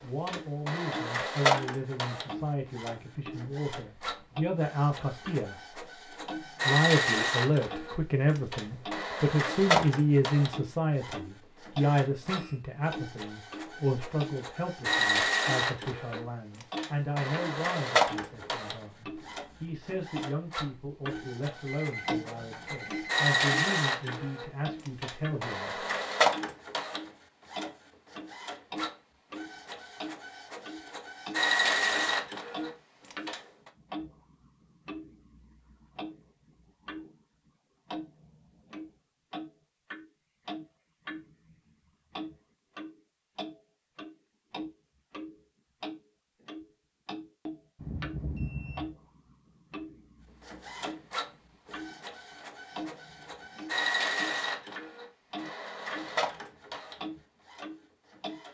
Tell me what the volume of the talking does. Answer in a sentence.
The volume of the talking goes up, then down.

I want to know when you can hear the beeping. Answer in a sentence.
The beeping can be heard from 12.0 to 12.6 s, from 21.6 to 23.1 s and from 47.8 to 48.9 s.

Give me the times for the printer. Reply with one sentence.
You can hear the printer from 0.0 to 33.7 s and from 50.5 to 58.5 s.